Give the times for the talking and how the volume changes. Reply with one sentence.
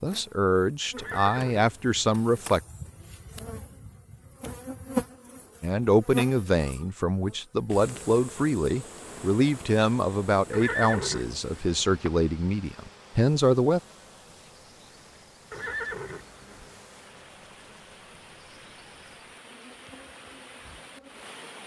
The talking can be heard briefly from 0.0 to 2.6 s; and from 5.6 to 13.8 s, at a steady volume.